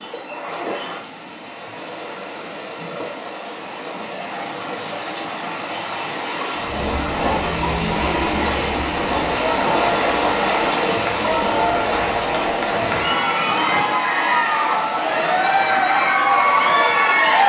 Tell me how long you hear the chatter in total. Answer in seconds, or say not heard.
11 s.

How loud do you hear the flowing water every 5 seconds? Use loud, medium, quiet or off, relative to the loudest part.
medium, loud, loud, medium.